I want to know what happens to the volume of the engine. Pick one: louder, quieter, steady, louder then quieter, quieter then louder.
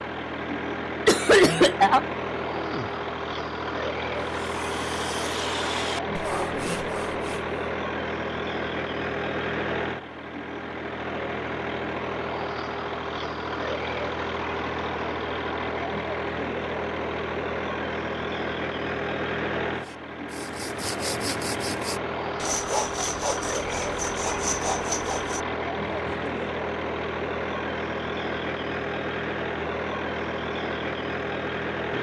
steady.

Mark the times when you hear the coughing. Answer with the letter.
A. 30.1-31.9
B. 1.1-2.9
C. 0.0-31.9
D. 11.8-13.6
B.